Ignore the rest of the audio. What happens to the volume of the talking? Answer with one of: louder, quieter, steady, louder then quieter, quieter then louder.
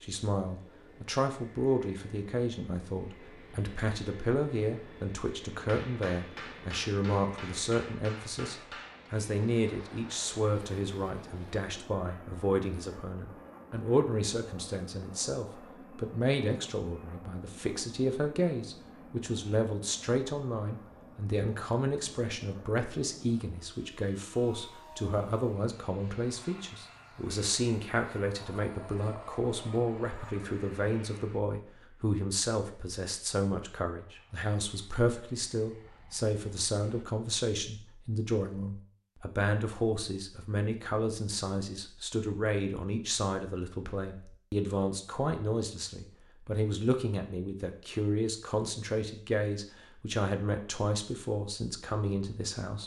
steady.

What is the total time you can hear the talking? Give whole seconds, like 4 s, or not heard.
53 s.